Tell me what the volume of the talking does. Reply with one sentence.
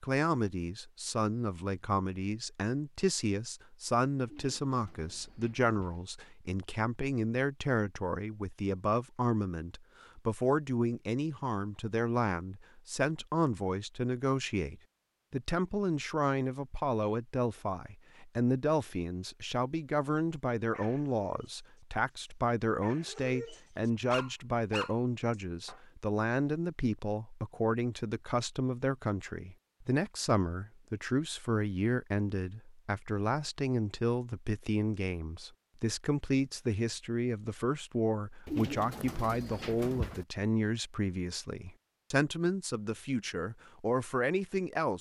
The loudness of the talking stays about the same.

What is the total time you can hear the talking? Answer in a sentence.
You can hear the talking for 45 seconds altogether.